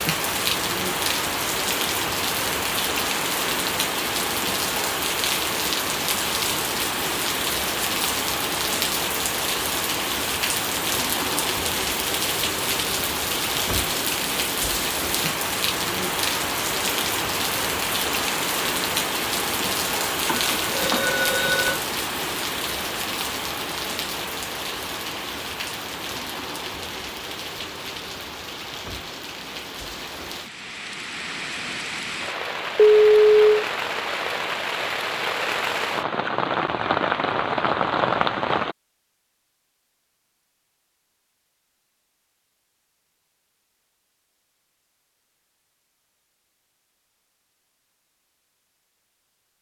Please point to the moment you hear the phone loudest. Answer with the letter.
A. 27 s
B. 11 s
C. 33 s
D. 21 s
C.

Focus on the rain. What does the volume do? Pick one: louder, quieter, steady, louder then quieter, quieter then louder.
quieter then louder.